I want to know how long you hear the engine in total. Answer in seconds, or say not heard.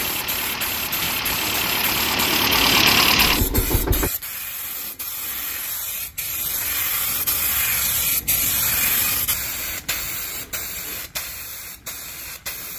4 s.